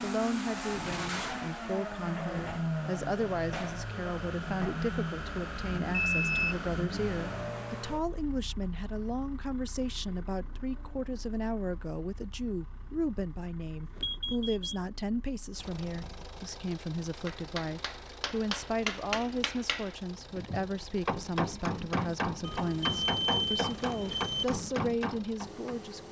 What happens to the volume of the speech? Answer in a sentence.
The loudness of the speech stays about the same.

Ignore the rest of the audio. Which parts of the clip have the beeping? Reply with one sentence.
You can hear the beeping from 6.0 to 6.6 s, from 13.9 to 14.8 s and from 22.4 to 24.4 s.